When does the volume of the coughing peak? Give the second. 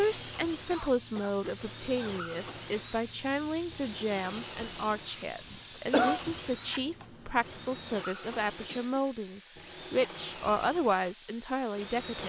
6 s.